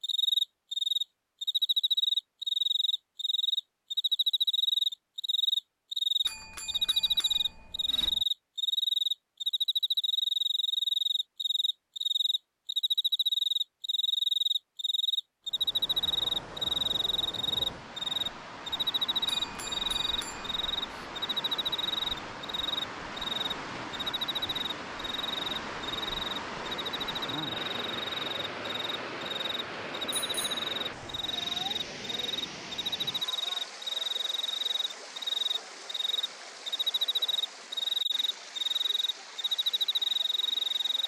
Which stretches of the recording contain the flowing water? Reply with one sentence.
The flowing water can be heard from 15.4 to 41.0 s.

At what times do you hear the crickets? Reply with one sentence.
You can hear the crickets from 0.0 to 41.0 s.